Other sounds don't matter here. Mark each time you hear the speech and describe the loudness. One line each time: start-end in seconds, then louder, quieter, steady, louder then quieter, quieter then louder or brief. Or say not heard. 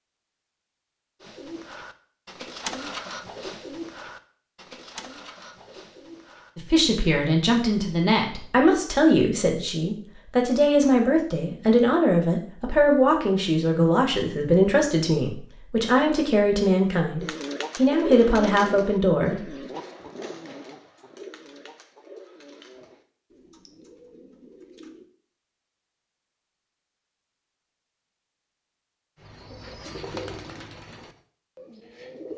6.5-19.6 steady.